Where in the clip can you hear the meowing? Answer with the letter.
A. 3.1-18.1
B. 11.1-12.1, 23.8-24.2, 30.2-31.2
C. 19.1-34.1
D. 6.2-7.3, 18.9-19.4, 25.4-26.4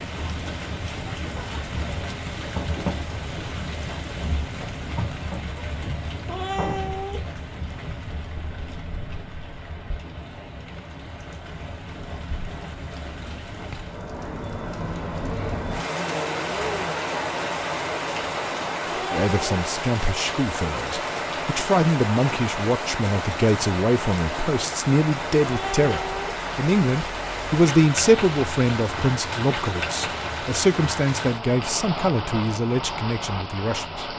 D.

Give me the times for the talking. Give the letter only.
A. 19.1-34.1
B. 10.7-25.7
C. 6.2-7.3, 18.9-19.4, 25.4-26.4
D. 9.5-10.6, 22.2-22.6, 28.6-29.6
A.